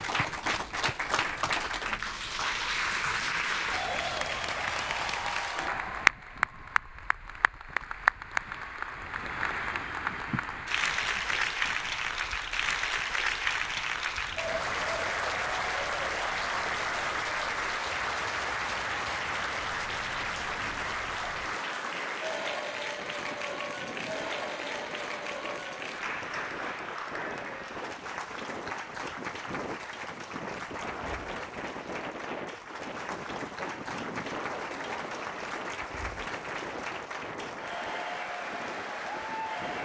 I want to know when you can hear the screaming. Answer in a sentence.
The screaming can't be heard in this clip.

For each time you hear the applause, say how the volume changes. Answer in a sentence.
The applause can be heard from 0.0 to 39.8 s, getting quieter.